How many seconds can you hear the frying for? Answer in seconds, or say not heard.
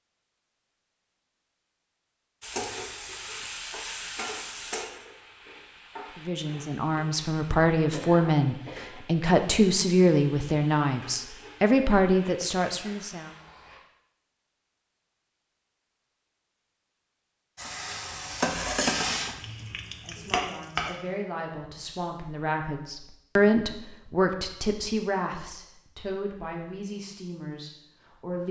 15 s.